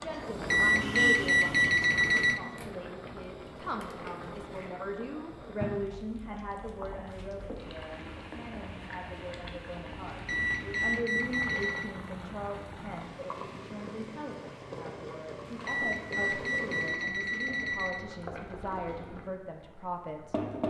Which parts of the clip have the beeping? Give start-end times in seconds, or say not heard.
0.5-2.4, 10.2-11.9, 15.7-18.1.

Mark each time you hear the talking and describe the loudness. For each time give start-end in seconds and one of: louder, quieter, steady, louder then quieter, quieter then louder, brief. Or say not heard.
0.0-20.4 steady.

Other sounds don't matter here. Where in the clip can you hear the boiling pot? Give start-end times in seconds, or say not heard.
0.0-20.6.